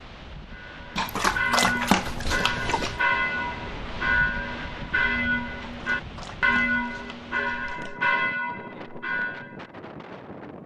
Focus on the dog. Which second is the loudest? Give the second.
2 s.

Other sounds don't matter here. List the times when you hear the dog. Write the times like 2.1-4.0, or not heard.
0.9-3.0, 5.6-8.0.